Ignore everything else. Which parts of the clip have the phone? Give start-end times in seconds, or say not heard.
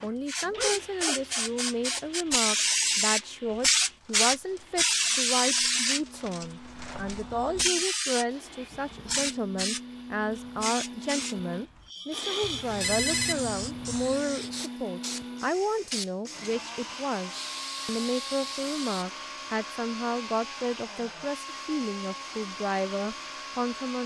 12.4-14.2.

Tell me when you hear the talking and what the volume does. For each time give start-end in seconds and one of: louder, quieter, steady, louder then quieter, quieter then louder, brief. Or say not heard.
0.0-24.0 steady.